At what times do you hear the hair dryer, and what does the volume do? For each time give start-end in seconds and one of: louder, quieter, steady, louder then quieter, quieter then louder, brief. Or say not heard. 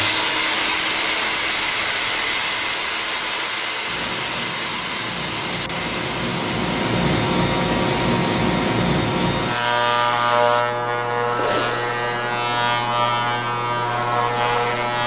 0.0-10.7 quieter.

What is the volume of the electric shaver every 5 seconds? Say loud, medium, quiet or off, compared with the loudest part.
medium, loud, loud.